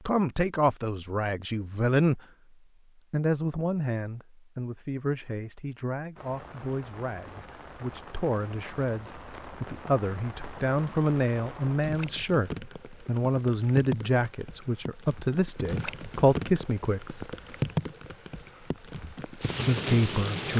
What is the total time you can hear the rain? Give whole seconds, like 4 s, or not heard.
14 s.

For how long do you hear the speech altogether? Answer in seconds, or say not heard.
17 s.